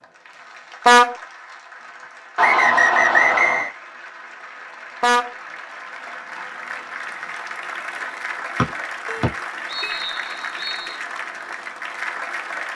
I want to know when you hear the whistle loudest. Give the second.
3 s.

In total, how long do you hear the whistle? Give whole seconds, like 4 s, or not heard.
4 s.